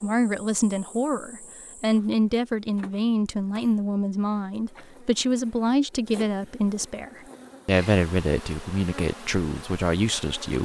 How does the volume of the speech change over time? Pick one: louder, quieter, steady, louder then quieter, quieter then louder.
steady.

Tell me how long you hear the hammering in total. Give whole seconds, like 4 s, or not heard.
not heard.